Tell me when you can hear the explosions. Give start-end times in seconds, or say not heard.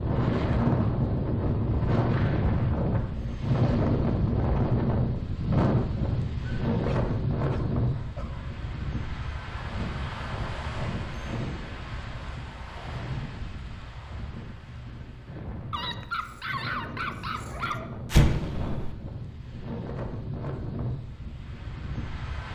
18.1-18.9.